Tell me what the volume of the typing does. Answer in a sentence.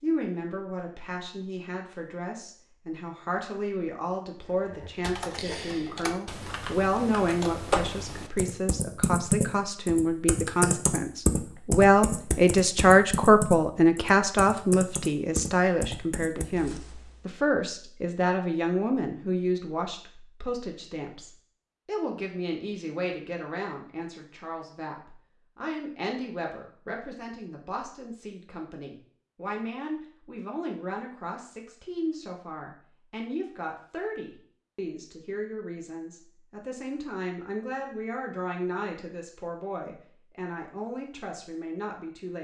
The loudness of the typing goes up, then down.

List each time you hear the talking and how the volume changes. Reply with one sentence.
The talking can be heard from 0.0 to 42.3 s, getting louder then quieter.